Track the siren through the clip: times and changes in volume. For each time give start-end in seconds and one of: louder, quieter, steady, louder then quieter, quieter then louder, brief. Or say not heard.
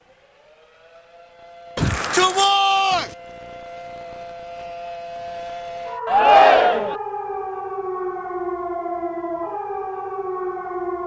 0.0-11.0 louder.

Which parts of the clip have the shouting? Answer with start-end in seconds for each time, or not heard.
1.8-3.1, 6.0-7.0.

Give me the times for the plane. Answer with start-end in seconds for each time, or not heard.
not heard.